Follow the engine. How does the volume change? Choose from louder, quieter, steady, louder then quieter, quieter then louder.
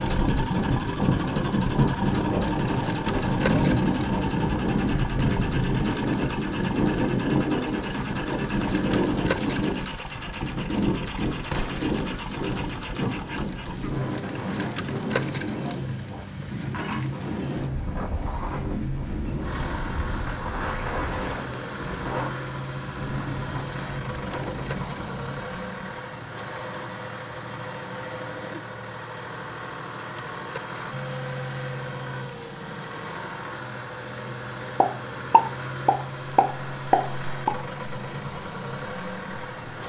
steady.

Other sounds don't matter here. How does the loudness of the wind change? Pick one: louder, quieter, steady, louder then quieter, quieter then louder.
quieter.